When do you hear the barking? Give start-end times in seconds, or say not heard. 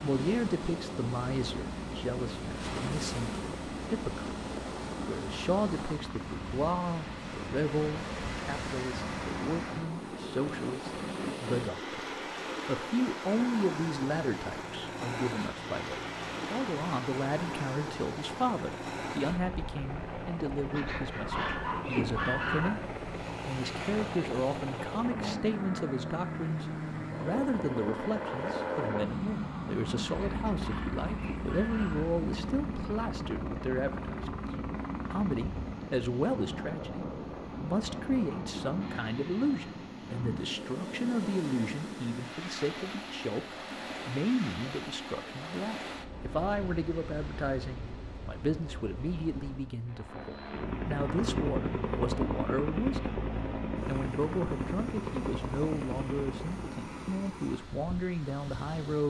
20.7-22.7, 30.1-32.0.